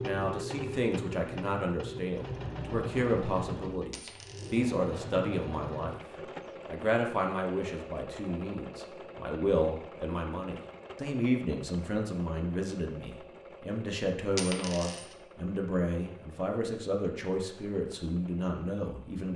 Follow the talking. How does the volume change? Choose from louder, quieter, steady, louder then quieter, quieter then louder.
steady.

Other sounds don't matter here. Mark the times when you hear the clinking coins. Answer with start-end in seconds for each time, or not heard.
3.9-4.7, 14.3-15.2.